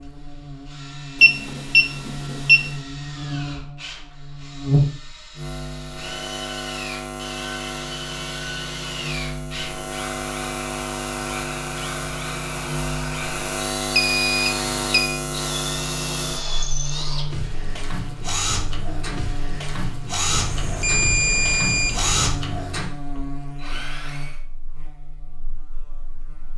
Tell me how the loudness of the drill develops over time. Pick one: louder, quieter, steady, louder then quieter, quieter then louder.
louder.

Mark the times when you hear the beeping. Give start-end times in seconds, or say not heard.
1.2-2.7, 13.9-15.2, 20.2-22.3.